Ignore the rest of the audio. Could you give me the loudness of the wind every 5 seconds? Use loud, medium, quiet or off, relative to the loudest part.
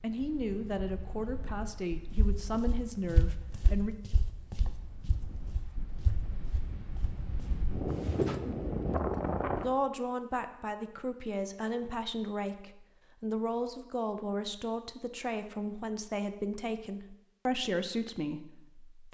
quiet, loud, off, off.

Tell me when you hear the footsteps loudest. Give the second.
8 s.